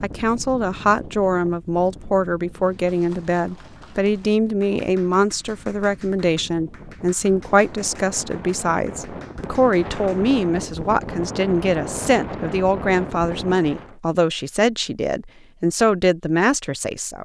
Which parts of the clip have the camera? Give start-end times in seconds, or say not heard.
not heard.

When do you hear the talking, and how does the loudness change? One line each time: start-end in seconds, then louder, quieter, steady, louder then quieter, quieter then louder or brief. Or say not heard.
0.0-17.2 steady.